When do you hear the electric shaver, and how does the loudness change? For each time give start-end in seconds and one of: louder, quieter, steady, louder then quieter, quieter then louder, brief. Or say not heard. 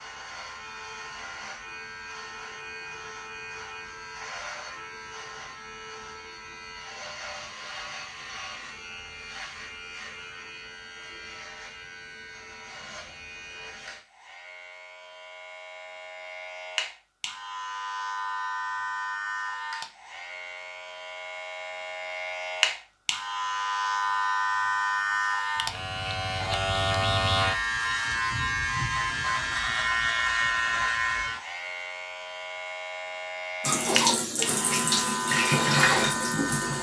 0.0-36.7 louder.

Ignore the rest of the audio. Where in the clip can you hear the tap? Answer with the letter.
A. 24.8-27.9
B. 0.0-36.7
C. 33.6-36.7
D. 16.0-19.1
C.